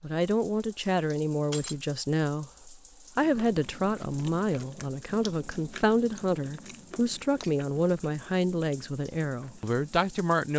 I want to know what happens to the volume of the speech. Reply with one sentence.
The volume of the speech stays about the same.